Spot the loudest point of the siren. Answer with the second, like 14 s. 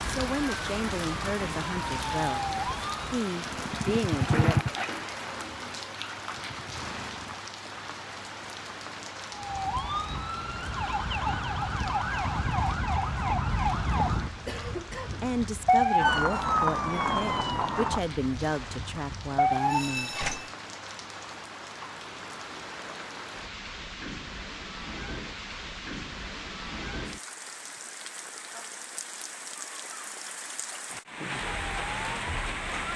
16 s.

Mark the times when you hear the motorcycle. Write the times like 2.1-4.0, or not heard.
3.4-7.5.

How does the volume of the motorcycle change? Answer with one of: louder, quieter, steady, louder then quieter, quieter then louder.
quieter.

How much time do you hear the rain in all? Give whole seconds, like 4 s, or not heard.
33 s.